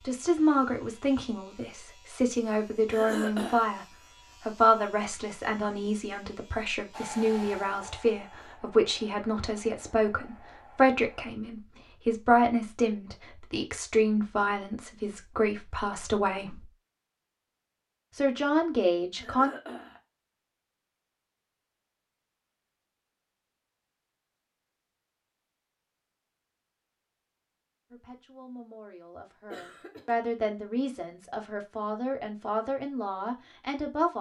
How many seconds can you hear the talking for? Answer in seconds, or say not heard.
24 s.